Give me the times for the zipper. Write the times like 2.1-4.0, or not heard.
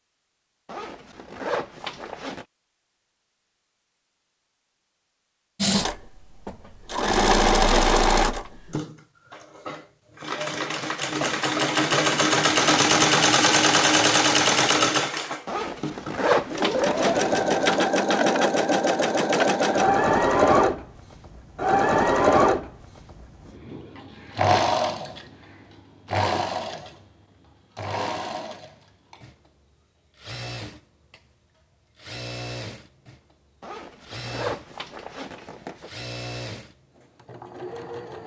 0.7-2.5, 15.4-17.9, 33.6-35.9.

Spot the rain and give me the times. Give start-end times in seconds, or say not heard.
not heard.